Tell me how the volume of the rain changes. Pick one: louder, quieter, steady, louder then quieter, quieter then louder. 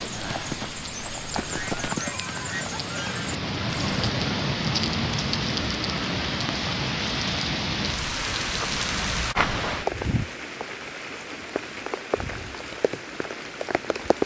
louder then quieter.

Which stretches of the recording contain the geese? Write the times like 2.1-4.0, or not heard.
1.4-3.3.